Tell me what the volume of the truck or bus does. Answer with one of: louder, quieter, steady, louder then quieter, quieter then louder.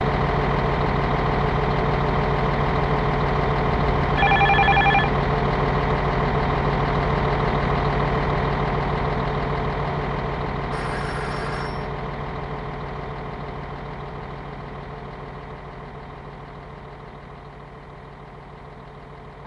quieter.